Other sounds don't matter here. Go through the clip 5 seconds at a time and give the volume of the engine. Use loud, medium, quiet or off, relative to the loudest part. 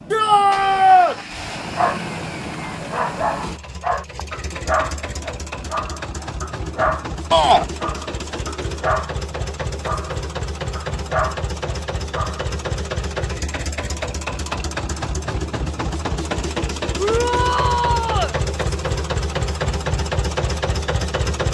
medium, medium, loud, loud, loud.